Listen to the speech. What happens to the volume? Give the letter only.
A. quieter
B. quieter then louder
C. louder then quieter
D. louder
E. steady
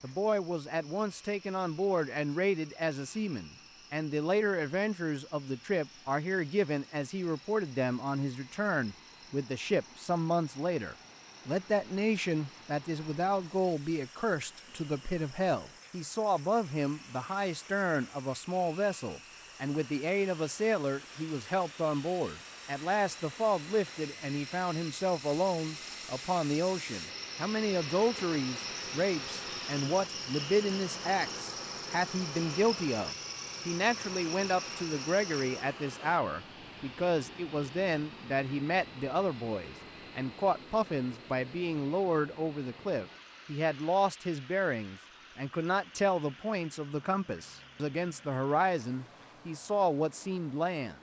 E.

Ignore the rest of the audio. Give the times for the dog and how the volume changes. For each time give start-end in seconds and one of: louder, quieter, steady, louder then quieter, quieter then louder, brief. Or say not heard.
not heard.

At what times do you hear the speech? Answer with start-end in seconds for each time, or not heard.
0.0-50.9.